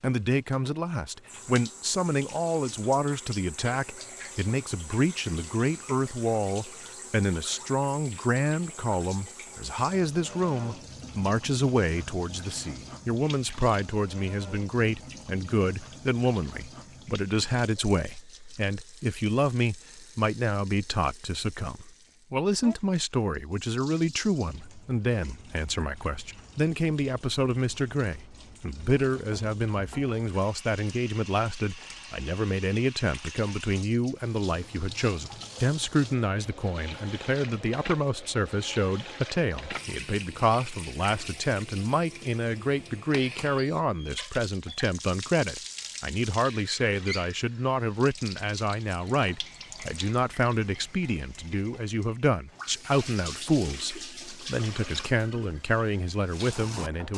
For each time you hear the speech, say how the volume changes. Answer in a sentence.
The speech can be heard from 0.0 to 57.1 s, at a steady volume.